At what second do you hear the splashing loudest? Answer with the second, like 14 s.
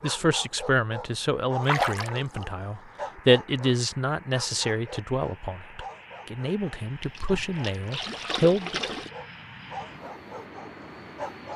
2 s.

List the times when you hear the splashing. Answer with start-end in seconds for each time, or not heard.
1.6-2.5, 7.0-9.1.